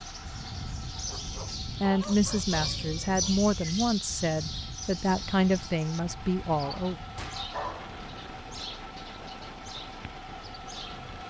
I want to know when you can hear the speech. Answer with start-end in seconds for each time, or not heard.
1.8-7.0.